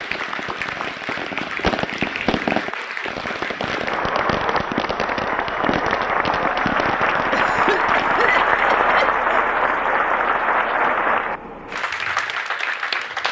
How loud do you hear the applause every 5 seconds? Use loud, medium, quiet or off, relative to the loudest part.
medium, loud, loud.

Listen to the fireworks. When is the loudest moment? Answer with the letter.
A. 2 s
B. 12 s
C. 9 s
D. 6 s
A.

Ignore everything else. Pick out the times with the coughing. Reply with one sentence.
The coughing can be heard from 7.3 to 9.4 s.